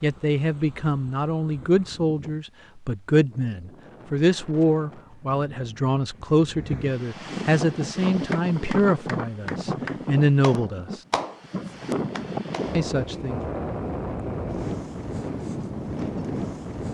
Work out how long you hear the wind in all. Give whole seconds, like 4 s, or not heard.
17 s.